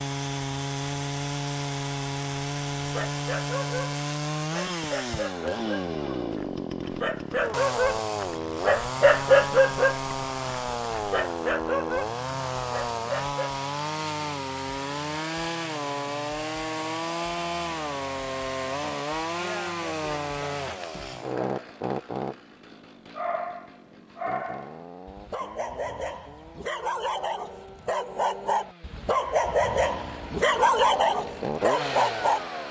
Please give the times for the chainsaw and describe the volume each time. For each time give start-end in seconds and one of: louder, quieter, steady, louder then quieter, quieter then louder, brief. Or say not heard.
0.0-32.6 quieter.